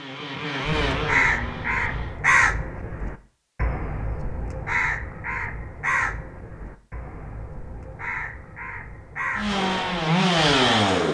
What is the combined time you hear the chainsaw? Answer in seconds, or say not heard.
4 s.